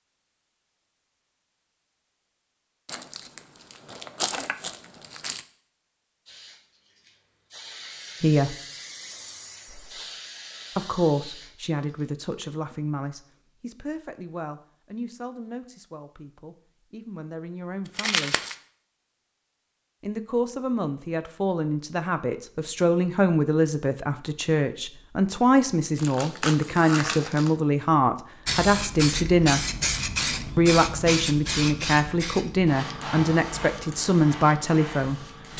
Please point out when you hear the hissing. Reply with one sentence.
The hissing can be heard from 6.2 to 12.1 s and from 28.4 to 35.5 s.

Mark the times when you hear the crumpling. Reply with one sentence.
The crumpling can be heard from 2.9 to 5.5 s, from 17.9 to 18.6 s and from 25.9 to 27.6 s.